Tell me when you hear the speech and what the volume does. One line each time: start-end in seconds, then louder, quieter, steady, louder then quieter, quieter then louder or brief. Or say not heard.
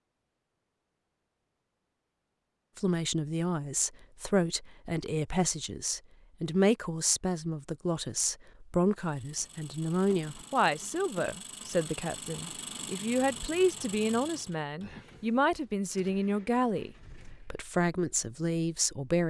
2.8-19.2 steady.